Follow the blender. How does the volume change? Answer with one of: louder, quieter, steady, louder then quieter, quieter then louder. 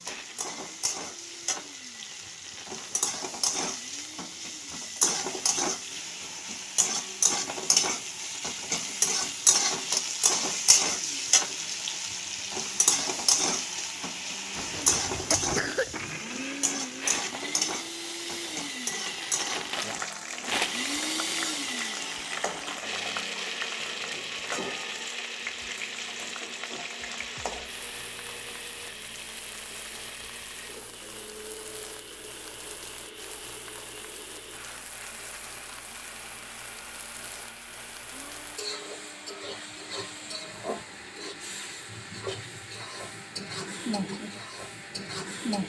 louder then quieter.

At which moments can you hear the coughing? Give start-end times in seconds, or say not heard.
14.6-15.9.